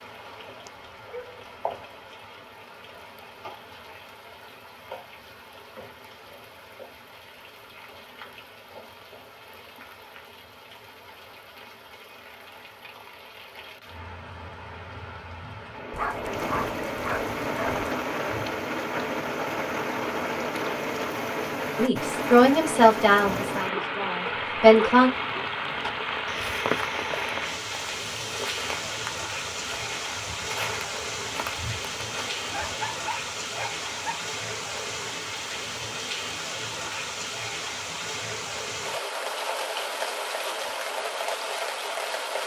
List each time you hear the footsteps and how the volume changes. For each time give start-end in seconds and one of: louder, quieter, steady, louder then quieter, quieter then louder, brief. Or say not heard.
25.6-32.8 steady.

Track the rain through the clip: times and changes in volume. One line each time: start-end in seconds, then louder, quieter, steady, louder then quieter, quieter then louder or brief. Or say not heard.
0.0-42.4 louder.